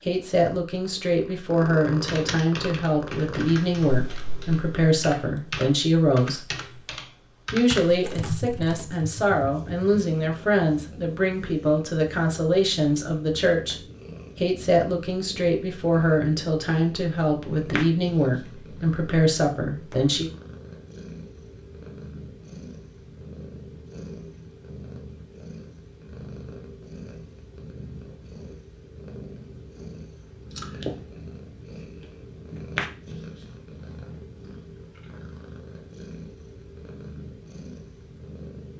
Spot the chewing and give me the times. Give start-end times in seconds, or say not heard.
not heard.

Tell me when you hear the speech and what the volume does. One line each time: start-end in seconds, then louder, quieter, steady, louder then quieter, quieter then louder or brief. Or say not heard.
0.1-6.5 steady
7.5-13.8 steady
14.3-20.3 steady.